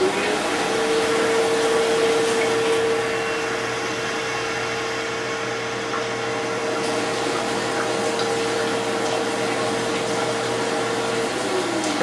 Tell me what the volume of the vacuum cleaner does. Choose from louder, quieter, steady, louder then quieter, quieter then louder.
quieter.